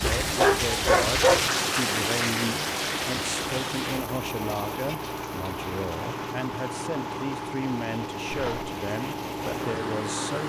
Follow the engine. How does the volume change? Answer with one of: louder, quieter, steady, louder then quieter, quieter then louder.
steady.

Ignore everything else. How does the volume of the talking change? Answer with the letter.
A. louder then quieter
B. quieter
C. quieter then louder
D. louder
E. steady
E.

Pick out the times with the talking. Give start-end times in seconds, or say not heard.
0.0-10.4.